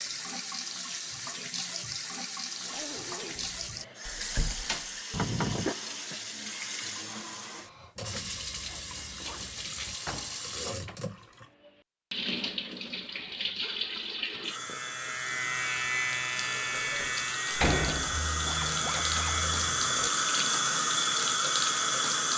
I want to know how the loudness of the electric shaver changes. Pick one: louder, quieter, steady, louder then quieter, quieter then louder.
quieter.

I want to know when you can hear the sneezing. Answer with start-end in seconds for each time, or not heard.
not heard.